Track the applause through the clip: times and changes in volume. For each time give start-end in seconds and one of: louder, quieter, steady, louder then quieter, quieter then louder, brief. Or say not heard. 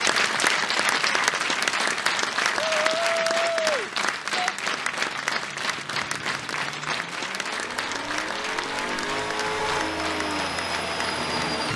0.0-11.7 quieter.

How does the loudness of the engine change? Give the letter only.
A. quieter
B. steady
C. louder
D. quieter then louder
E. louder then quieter
C.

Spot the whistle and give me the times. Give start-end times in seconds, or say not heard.
not heard.